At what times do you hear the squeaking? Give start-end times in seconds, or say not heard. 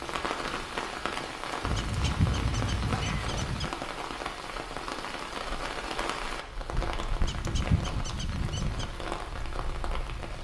1.7-3.7, 7.2-8.9.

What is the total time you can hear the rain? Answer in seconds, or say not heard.
10 s.